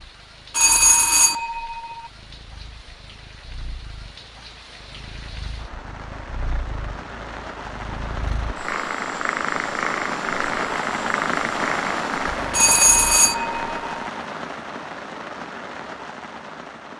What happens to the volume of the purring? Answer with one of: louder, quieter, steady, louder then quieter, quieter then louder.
louder.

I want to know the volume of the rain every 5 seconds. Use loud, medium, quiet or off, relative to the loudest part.
quiet, medium, loud, medium.